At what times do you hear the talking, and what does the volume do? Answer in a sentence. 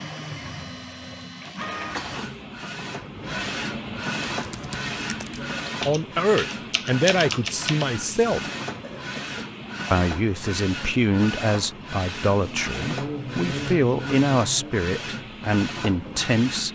You can hear the talking briefly from 5.8 to 8.4 s; and from 9.9 to 16.7 s, at a steady volume.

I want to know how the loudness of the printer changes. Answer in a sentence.
The volume of the printer stays about the same.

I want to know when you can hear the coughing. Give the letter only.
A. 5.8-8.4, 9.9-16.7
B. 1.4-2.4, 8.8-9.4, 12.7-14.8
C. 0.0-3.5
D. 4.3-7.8
B.